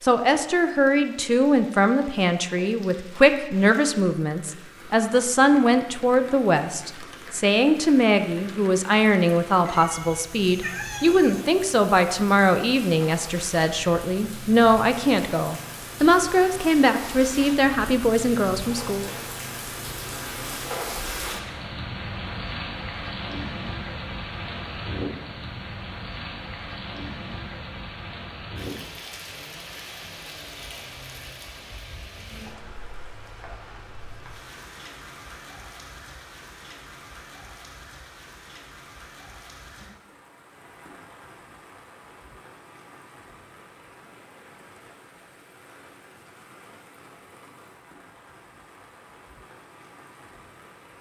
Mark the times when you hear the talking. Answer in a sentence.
You can hear the talking from 0.0 to 19.1 s.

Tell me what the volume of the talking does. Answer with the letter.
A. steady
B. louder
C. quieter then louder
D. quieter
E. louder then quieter
A.